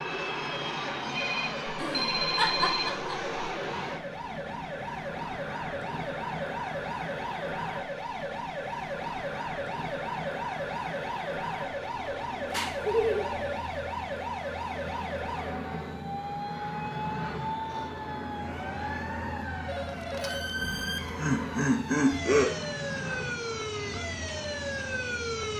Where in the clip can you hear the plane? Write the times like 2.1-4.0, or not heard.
0.0-25.5.